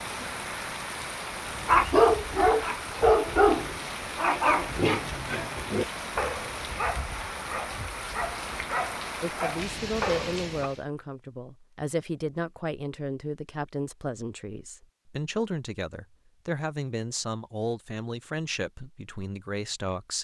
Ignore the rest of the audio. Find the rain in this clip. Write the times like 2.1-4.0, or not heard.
0.0-10.8.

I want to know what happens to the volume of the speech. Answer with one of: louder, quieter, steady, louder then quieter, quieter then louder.
steady.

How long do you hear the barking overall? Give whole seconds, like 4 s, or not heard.
9 s.